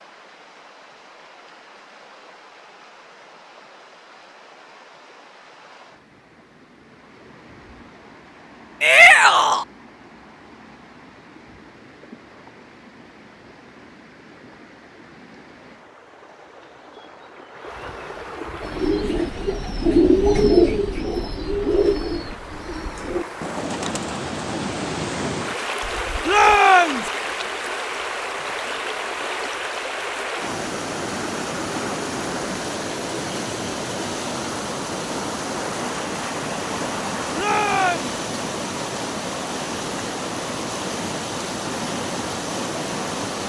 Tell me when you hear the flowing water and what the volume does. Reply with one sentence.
You can hear the flowing water from 0.0 to 43.4 s, getting louder.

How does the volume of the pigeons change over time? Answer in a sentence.
The loudness of the pigeons goes down.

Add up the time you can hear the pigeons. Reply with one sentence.
You can hear the pigeons for 8 seconds altogether.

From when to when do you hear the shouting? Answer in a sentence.
You can hear the shouting from 8.8 to 9.7 s, from 26.2 to 27.1 s and from 37.4 to 38.1 s.